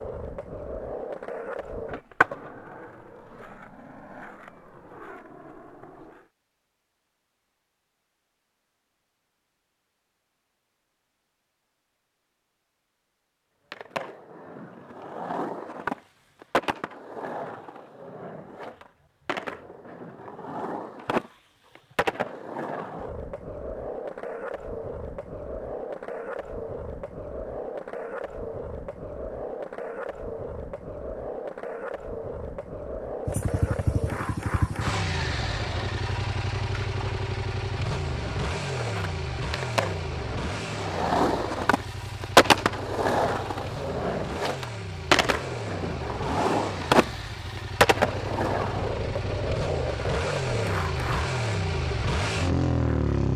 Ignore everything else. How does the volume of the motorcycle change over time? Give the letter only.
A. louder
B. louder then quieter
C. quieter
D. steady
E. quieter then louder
E.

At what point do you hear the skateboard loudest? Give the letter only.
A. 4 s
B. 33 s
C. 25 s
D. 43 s
D.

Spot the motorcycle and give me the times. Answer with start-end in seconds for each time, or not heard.
33.2-53.3.